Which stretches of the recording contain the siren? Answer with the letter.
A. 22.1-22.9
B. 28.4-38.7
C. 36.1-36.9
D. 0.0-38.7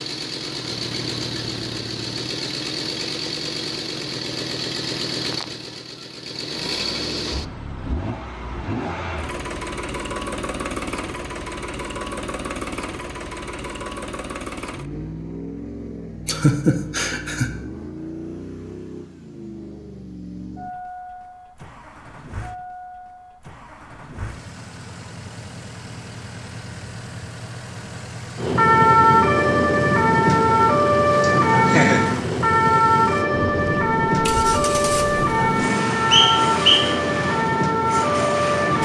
B.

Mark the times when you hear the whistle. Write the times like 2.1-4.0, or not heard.
36.1-36.9.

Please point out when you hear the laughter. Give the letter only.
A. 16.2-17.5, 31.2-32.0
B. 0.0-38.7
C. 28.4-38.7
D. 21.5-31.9
A.